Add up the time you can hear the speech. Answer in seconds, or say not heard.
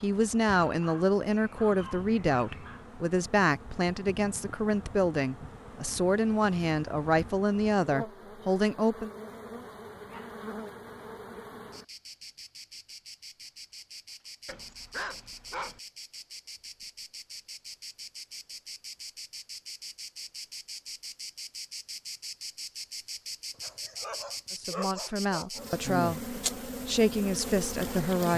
13 s.